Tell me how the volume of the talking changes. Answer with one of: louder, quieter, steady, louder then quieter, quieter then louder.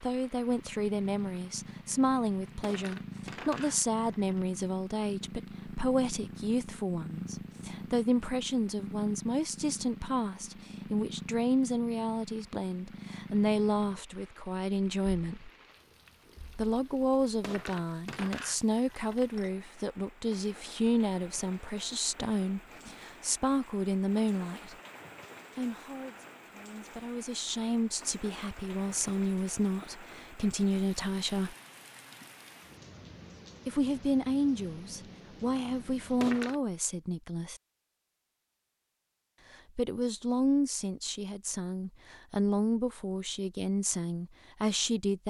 steady.